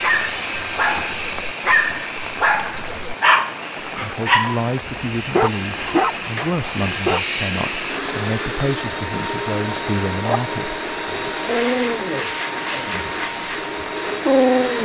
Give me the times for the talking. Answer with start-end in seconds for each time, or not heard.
3.8-10.8.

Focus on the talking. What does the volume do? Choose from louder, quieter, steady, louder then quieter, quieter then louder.
steady.